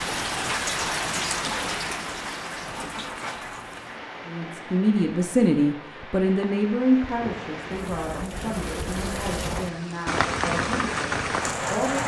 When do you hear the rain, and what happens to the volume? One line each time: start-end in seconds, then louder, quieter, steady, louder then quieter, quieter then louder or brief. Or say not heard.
0.0-12.0 quieter then louder.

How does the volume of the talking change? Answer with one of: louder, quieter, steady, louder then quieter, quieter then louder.
quieter.